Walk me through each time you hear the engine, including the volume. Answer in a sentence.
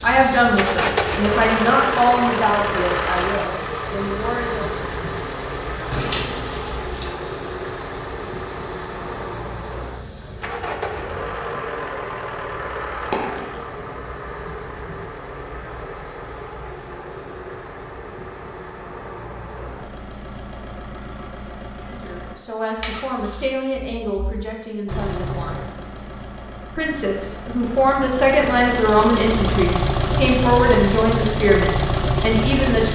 The engine can be heard from 0.0 to 22.4 s, getting quieter; and from 24.9 to 32.9 s, getting louder.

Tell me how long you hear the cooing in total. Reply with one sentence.
The cooing can't be heard in this clip.